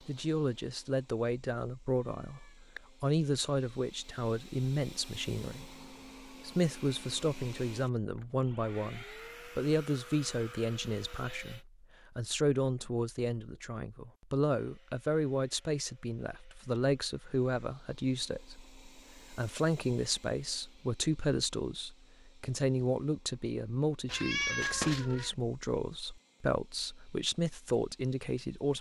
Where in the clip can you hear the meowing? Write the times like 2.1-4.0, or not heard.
2.1-2.8, 24.1-25.4.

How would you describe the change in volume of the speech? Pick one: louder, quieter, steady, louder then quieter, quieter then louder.
steady.